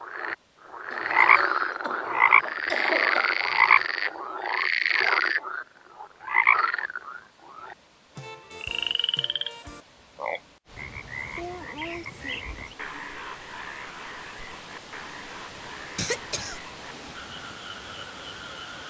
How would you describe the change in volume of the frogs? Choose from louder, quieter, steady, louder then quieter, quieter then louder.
quieter.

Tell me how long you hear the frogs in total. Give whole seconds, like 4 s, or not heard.
19 s.